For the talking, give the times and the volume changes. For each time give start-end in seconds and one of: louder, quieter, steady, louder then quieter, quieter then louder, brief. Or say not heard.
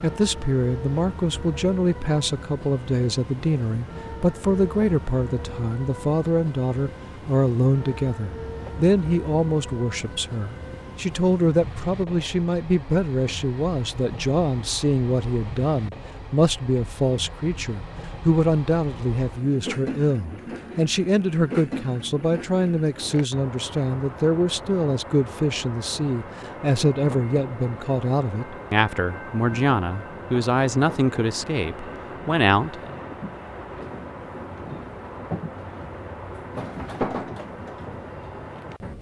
0.0-32.9 steady.